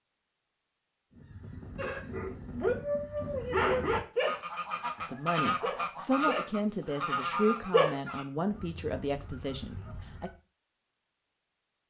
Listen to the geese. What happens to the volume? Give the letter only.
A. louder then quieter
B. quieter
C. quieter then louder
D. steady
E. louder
A.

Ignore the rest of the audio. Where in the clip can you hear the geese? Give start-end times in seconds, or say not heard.
1.1-10.3.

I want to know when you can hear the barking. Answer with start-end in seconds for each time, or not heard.
1.8-8.0.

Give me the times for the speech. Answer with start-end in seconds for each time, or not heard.
5.0-10.3.